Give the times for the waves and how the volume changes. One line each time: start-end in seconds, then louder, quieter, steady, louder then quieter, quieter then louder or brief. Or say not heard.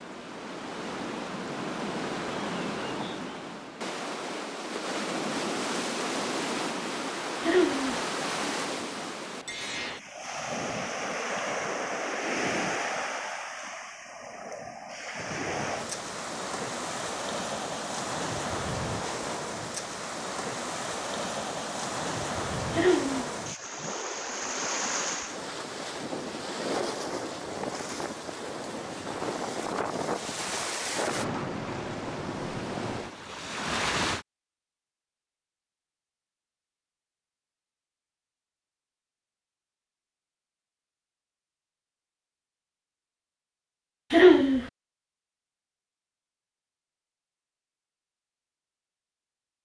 0.0-34.2 steady.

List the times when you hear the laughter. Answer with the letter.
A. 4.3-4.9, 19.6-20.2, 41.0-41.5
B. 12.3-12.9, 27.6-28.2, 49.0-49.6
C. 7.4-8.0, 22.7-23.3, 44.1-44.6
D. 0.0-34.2
C.